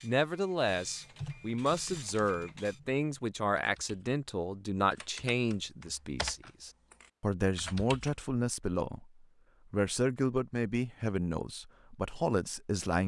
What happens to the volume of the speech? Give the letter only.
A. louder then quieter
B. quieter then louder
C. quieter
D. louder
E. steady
E.